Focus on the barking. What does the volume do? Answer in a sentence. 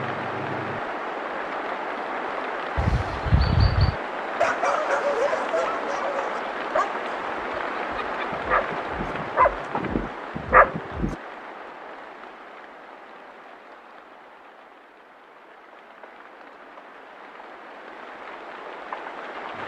The loudness of the barking goes down, then up.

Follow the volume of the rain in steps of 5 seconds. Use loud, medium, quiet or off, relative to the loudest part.
loud, loud, medium, medium.